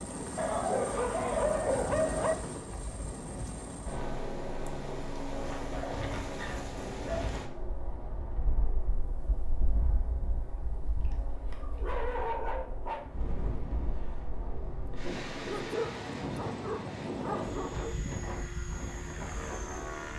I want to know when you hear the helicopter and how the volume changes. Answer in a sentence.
The helicopter can be heard from 0.0 to 20.1 s, getting quieter then louder.